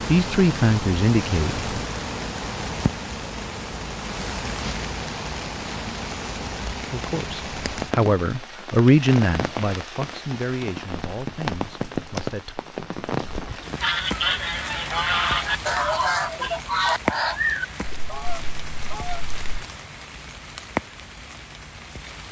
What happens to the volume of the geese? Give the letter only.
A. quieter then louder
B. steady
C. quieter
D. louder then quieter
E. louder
C.